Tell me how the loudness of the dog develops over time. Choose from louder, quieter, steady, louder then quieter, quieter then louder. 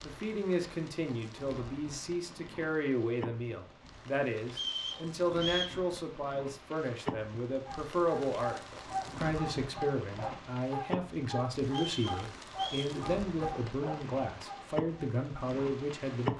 steady.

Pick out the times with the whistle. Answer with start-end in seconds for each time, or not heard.
4.5-5.8, 11.7-12.9.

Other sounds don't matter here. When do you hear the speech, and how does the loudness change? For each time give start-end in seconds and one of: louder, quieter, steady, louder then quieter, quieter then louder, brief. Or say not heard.
0.0-16.3 steady.